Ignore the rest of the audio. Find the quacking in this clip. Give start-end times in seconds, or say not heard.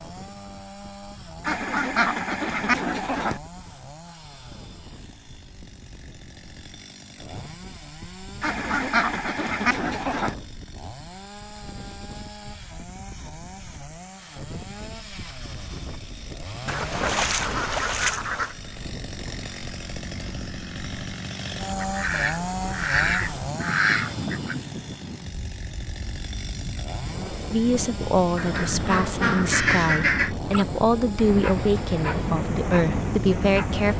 1.4-3.4, 8.4-10.3, 16.6-18.6, 21.8-24.6, 28.4-30.4.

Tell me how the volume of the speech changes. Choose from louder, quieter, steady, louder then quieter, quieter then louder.
steady.